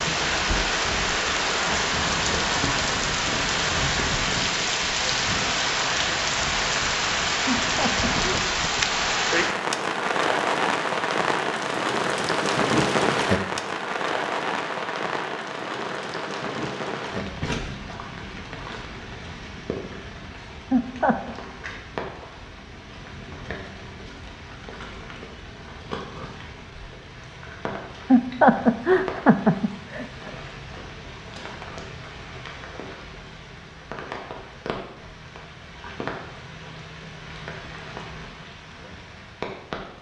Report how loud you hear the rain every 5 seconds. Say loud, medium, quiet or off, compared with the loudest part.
loud, loud, loud, medium, quiet, quiet, quiet, quiet.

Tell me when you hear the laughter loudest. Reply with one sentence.
The volume of the laughter peaks at 29 seconds.